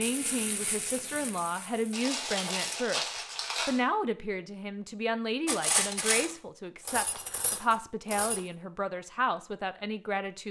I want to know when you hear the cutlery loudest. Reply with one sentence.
The loudest moment of the cutlery is at 6 seconds.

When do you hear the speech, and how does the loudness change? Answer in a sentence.
The speech can be heard from 0.0 to 10.4 s, at a steady volume.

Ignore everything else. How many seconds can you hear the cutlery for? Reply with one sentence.
You can hear the cutlery for 3 seconds altogether.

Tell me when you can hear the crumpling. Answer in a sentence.
The crumpling can be heard from 1.9 to 3.8 s.